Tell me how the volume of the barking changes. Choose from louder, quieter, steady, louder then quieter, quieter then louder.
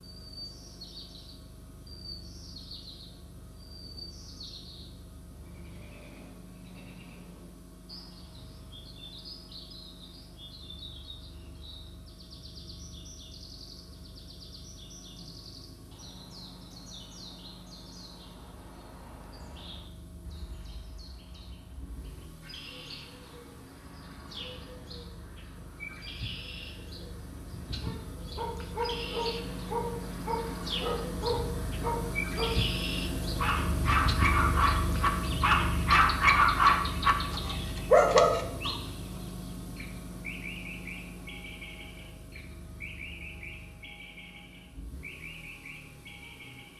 louder.